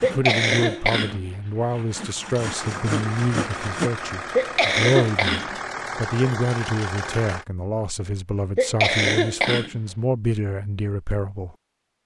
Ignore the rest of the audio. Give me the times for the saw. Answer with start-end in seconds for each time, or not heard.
0.0-3.9.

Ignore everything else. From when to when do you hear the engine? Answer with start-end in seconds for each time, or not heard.
2.5-7.5.